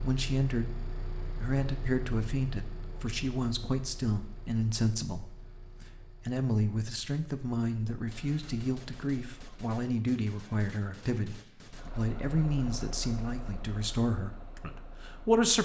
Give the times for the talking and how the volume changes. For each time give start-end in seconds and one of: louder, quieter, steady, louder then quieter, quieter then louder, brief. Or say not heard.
0.0-15.5 steady.